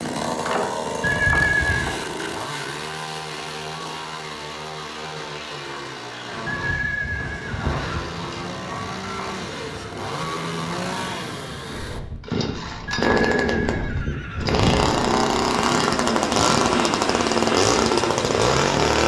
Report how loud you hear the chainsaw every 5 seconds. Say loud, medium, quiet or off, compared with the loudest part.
medium, quiet, medium, loud.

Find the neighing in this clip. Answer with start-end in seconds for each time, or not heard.
1.0-2.0, 6.5-8.1, 12.8-14.9.